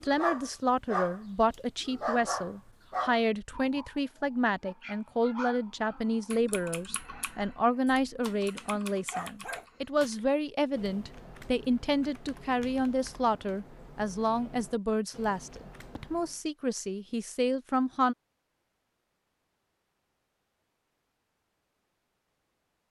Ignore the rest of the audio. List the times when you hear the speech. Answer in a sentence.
You can hear the speech from 0.0 to 18.1 s.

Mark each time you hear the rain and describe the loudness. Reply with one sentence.
The rain can't be heard in this clip.